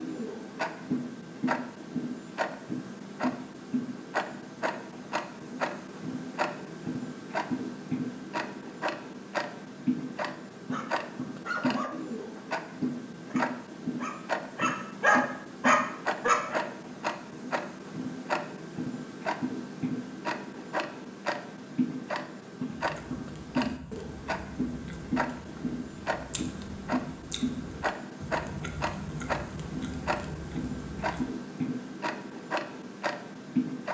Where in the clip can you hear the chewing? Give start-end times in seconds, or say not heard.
22.6-31.3.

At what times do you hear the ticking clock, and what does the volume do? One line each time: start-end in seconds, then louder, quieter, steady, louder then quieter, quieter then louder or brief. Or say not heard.
0.0-33.8 steady.